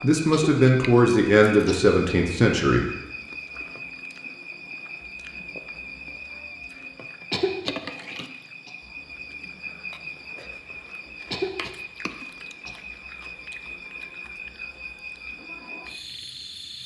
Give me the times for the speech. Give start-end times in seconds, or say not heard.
0.0-2.9.